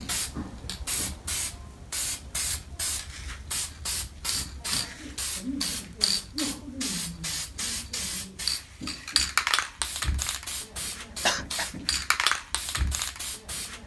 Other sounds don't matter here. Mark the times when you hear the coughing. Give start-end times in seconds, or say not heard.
11.2-11.7.